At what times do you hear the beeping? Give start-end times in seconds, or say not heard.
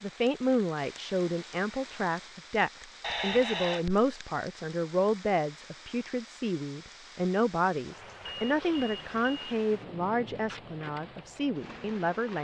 3.0-3.9, 8.2-9.6.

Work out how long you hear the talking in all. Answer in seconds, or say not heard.
12 s.